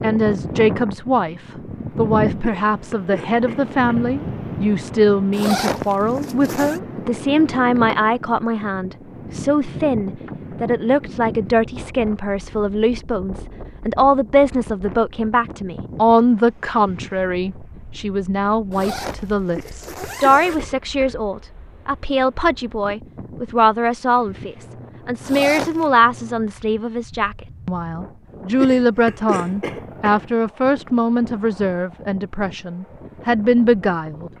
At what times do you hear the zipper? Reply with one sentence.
You can hear the zipper from 5.3 to 6.8 s, from 18.7 to 20.6 s and from 25.2 to 25.9 s.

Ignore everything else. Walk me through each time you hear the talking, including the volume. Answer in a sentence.
You can hear the talking from 0.0 to 34.3 s, at a steady volume.